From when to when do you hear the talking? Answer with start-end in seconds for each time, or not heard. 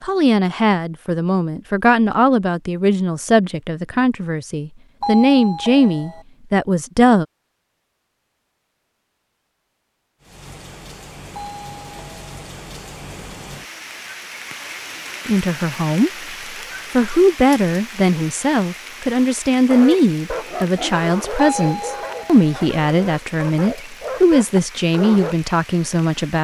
0.0-7.2, 15.2-16.1, 16.9-26.3.